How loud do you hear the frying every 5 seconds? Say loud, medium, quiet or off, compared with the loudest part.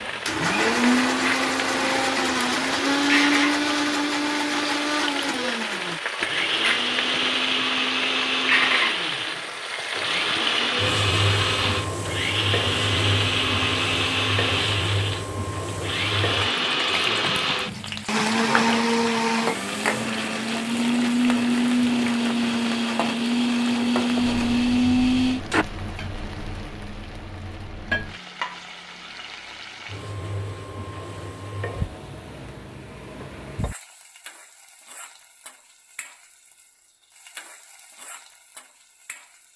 loud, loud, loud, loud, medium, medium, medium, quiet.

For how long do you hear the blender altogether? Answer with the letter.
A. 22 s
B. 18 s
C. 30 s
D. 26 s
D.